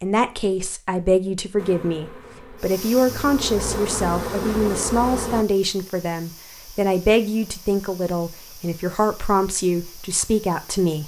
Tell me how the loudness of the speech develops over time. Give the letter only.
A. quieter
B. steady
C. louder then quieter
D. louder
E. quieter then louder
B.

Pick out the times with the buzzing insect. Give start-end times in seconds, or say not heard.
1.6-5.5.